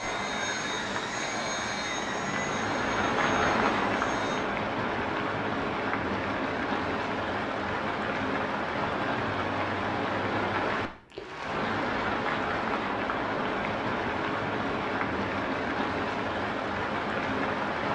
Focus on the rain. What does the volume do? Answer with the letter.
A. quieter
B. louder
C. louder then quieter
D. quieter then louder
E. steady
E.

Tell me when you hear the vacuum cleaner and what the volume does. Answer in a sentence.
The vacuum cleaner can be heard from 0.0 to 4.5 s, getting quieter.